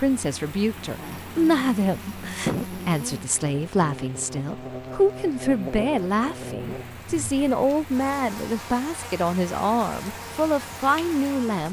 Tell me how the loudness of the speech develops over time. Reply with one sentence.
The loudness of the speech stays about the same.